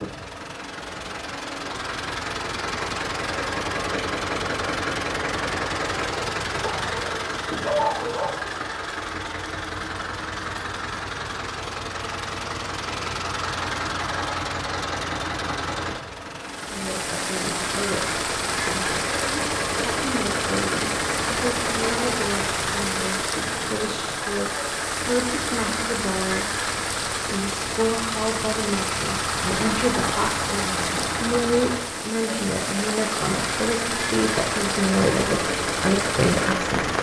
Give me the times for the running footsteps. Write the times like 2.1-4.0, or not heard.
not heard.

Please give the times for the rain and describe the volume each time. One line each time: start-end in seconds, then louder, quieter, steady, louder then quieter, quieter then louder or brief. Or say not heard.
16.4-36.9 steady.